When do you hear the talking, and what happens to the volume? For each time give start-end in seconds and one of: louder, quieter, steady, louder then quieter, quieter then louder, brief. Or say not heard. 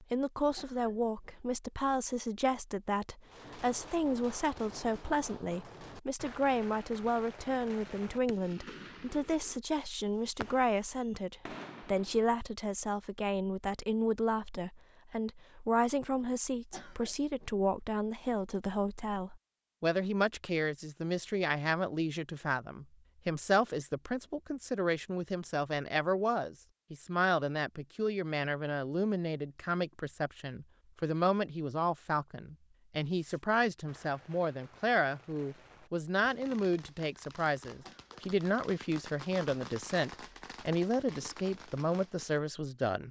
0.0-43.0 steady.